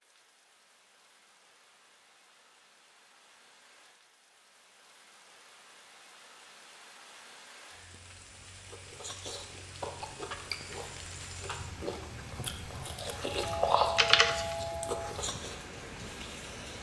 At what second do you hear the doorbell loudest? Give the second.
14 s.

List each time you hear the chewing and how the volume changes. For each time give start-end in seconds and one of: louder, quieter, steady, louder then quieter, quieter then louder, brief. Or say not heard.
8.7-15.6 louder then quieter.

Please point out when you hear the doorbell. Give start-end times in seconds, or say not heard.
13.3-15.1.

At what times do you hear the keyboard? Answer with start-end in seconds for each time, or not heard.
13.3-14.6.